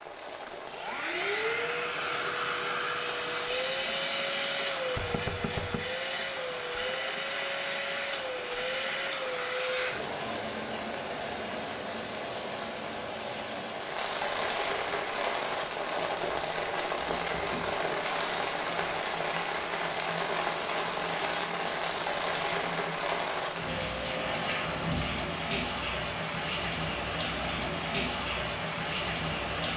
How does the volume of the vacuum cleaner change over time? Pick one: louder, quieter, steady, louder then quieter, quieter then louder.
quieter.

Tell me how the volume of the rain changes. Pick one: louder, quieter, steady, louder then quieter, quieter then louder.
louder.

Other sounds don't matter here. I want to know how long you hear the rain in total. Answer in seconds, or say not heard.
30 s.